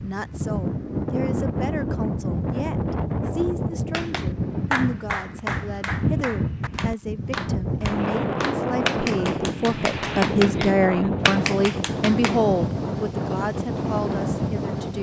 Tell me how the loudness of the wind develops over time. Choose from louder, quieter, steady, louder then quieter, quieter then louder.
steady.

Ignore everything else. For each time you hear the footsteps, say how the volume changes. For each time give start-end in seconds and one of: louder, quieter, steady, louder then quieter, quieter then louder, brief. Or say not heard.
not heard.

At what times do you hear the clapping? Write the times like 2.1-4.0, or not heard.
3.9-12.4.